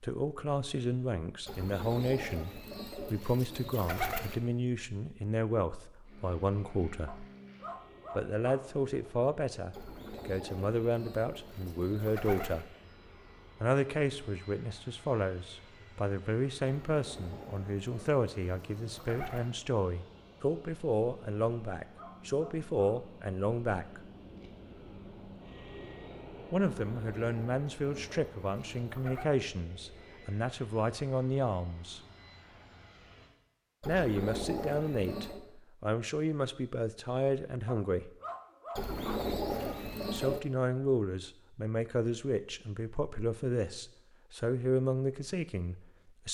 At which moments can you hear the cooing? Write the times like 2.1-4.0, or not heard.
1.4-4.4, 9.7-12.7, 16.6-19.5, 26.8-29.2, 33.8-35.4, 38.8-40.4.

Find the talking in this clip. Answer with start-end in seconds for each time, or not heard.
0.0-7.2, 8.2-12.7, 13.6-24.1, 26.5-32.0, 33.9-38.1, 40.1-46.2.